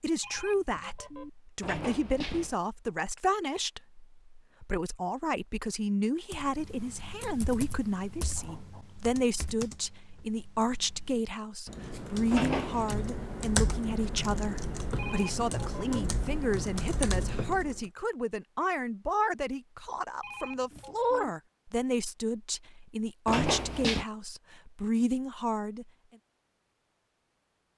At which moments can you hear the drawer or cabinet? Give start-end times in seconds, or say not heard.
1.6-2.5, 12.3-12.9, 23.2-24.1.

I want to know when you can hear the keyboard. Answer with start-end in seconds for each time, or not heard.
6.3-17.9.